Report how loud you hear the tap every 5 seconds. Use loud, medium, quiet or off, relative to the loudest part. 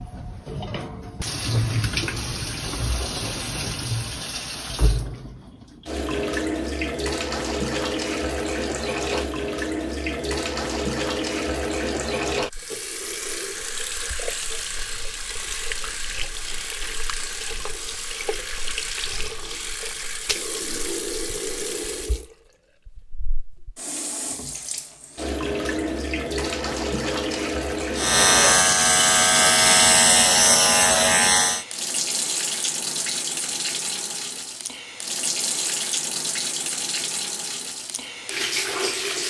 loud, loud, loud, medium, medium, loud, loud, loud.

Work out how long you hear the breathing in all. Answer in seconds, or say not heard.
not heard.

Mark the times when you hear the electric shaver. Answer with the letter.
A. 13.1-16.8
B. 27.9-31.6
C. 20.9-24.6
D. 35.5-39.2
B.